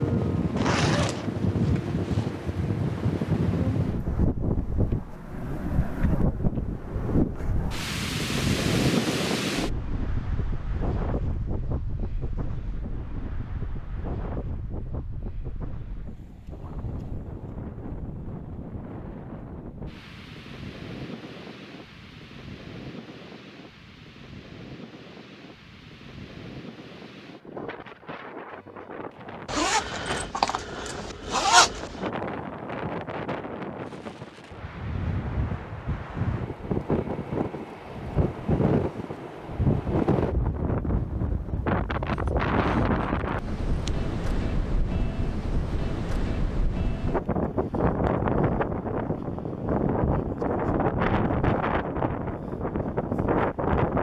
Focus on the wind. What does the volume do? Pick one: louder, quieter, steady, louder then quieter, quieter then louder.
quieter then louder.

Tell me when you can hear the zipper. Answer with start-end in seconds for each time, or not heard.
0.6-2.4, 29.4-32.0, 42.1-42.9, 43.5-43.9.